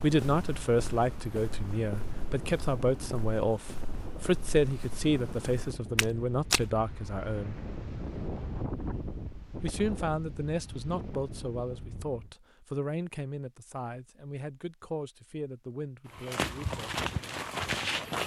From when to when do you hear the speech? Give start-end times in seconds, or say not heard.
0.0-7.6, 9.6-16.9.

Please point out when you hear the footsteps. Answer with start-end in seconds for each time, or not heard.
0.0-6.7, 16.1-18.2.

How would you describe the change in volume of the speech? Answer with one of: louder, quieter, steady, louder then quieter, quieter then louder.
quieter.